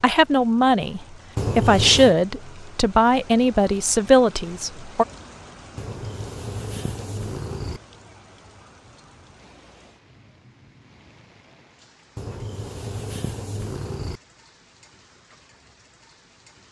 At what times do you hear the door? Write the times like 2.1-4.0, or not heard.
not heard.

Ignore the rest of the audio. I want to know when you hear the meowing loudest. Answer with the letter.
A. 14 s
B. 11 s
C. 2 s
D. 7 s
C.